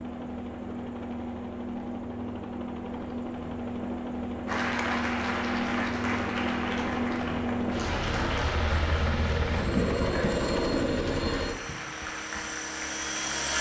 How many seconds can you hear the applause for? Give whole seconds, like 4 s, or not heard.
9 s.